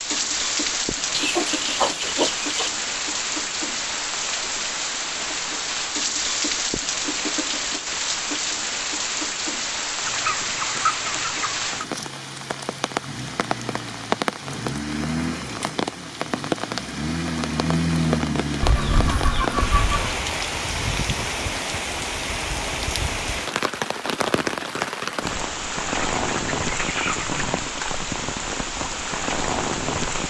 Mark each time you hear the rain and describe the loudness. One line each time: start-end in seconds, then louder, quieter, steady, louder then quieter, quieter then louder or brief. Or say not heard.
0.0-30.2 steady.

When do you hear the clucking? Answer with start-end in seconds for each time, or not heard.
1.1-2.7, 10.1-11.8, 18.6-20.2, 25.9-27.4.